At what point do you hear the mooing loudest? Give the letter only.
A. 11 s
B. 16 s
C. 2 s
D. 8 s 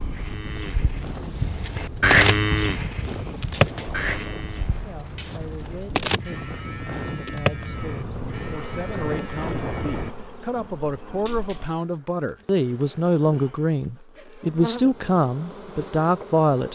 C.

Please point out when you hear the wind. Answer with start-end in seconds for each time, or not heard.
0.0-10.1.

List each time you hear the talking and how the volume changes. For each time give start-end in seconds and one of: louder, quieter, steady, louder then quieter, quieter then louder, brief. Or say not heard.
4.8-16.6 louder.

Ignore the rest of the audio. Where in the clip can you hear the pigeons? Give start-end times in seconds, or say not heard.
not heard.